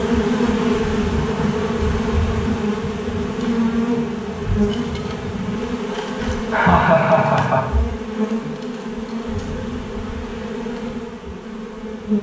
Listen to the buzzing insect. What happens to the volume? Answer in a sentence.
The volume of the buzzing insect goes down.